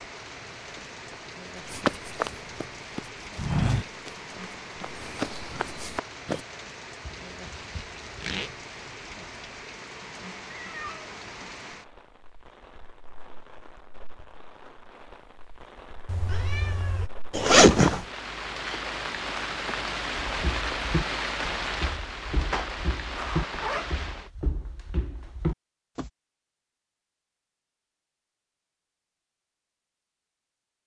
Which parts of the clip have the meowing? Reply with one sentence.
The meowing can be heard from 10.4 to 11.0 s and from 16.1 to 17.1 s.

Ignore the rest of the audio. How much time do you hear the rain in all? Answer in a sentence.
The rain can be heard for 24 seconds in total.